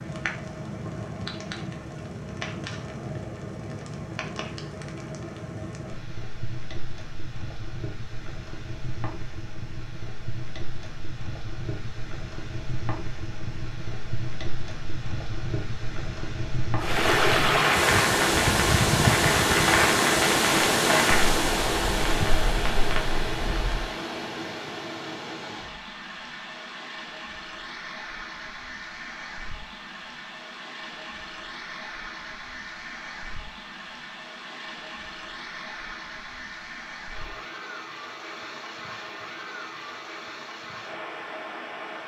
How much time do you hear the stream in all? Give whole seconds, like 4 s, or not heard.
25 s.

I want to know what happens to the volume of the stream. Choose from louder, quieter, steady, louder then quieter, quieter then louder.
quieter.